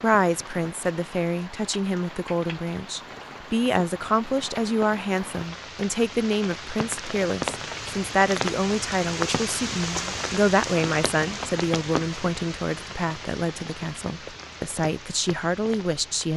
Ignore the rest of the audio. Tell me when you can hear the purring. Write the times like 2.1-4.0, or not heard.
not heard.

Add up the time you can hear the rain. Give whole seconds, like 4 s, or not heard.
16 s.